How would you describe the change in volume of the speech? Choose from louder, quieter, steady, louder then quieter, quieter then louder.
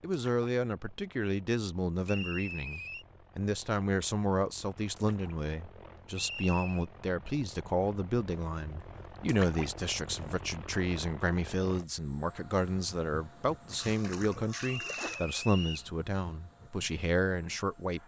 steady.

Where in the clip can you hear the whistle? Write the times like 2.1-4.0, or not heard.
2.0-3.0, 6.2-6.8, 14.6-15.9.